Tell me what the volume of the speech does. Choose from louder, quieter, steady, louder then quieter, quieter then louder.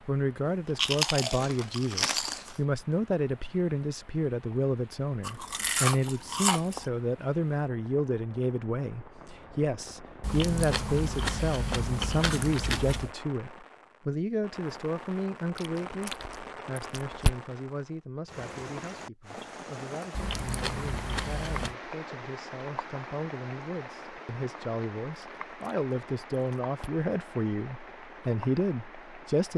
quieter then louder.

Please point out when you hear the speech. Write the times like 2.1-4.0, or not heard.
0.1-29.5.